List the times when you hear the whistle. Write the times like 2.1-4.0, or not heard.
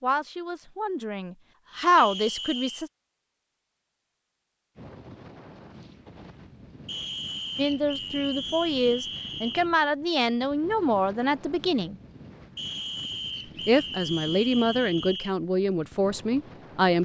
1.9-2.9, 6.8-9.7, 12.6-15.3.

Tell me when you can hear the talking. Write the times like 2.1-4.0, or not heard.
0.0-2.9, 7.5-11.9, 13.7-16.9.